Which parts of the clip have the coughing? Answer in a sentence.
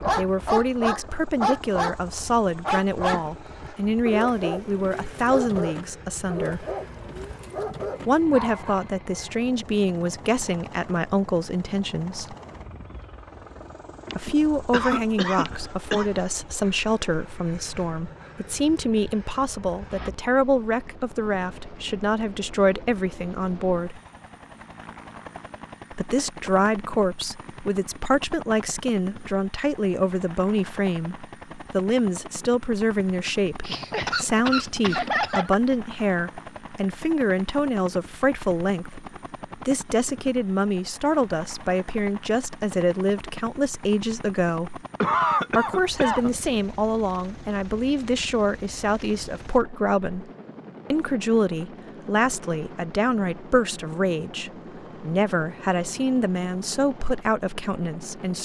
The coughing can be heard from 14.1 to 16.1 s, from 33.6 to 35.5 s and from 45.0 to 46.3 s.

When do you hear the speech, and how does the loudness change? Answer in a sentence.
The speech can be heard from 0.0 to 6.7 s, at a steady volume; from 8.1 to 12.3 s, at a steady volume; from 14.2 to 24.0 s, at a steady volume; from 25.9 to 44.8 s, at a steady volume; from 45.5 to 50.3 s, at a steady volume; and from 50.9 to 58.3 s, at a steady volume.